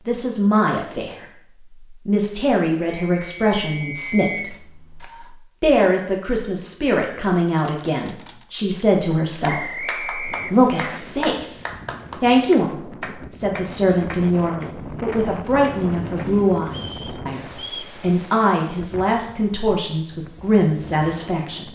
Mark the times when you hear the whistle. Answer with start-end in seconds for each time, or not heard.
2.9-4.5, 9.4-11.0, 16.7-17.9.